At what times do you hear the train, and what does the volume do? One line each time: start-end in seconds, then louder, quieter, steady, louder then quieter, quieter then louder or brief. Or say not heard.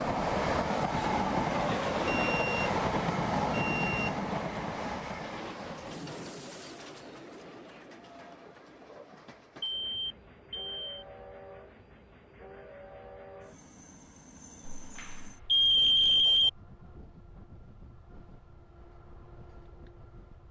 0.0-20.4 quieter.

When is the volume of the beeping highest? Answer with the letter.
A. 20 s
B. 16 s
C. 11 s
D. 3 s
B.